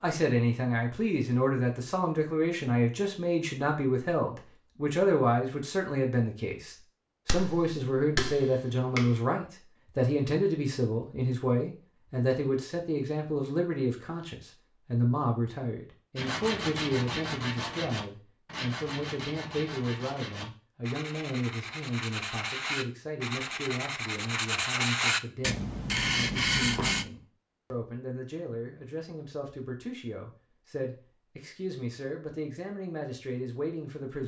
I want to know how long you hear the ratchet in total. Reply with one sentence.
You can't hear the ratchet here.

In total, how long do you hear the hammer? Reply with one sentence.
The hammer can be heard for 2 seconds in total.